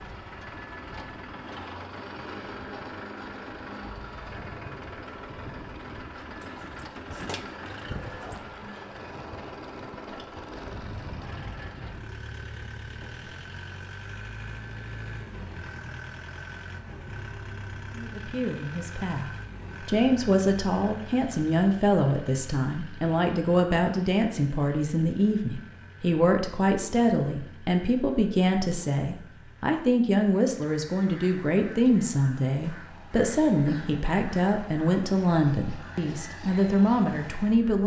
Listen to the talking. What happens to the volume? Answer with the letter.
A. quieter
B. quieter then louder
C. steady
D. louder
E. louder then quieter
C.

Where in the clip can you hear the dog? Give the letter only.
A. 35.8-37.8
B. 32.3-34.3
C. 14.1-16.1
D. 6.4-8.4
D.